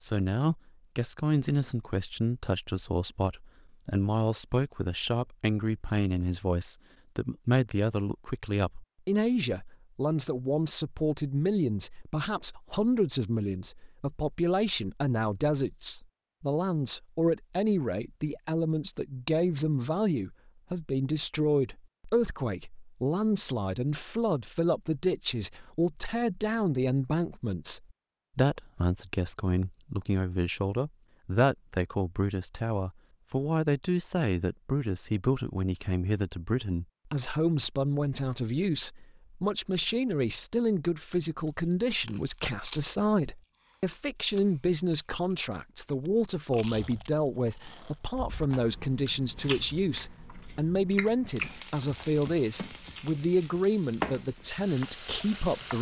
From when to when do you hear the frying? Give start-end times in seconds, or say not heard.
51.3-55.7.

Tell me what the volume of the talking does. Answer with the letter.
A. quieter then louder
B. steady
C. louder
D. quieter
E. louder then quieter
B.